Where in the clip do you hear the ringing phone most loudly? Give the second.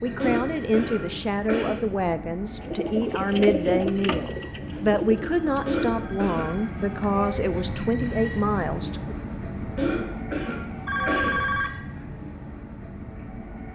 11 s.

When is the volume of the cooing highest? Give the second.
4 s.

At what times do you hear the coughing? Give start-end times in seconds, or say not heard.
0.2-1.9, 5.7-6.5, 9.8-11.4.